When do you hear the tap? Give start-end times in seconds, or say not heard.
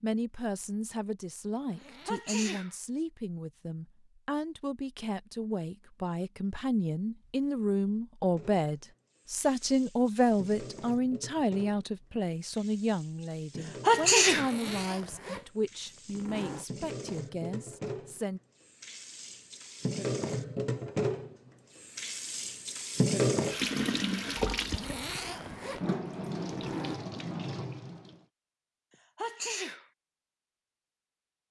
8.2-28.2.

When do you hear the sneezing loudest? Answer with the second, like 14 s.
14 s.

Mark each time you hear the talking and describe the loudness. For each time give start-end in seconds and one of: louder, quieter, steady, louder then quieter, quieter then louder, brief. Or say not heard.
0.0-18.4 louder then quieter.